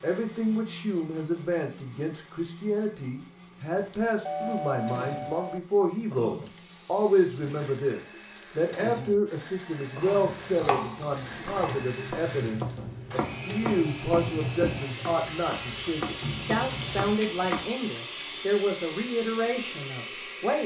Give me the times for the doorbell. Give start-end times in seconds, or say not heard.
4.2-5.6.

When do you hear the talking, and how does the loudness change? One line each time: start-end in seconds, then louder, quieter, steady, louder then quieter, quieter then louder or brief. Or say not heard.
0.0-20.6 steady.